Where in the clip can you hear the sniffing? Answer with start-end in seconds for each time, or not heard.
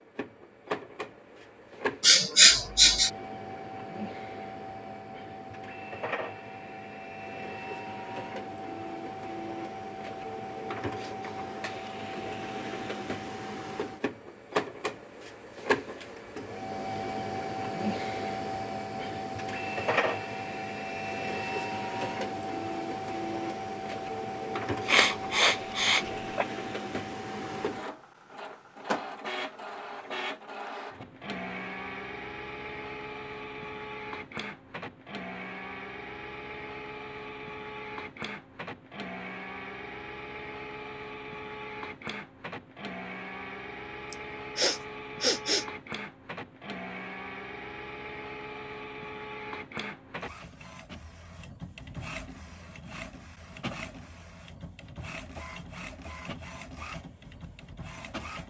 2.0-3.1, 24.9-26.4, 44.1-45.6.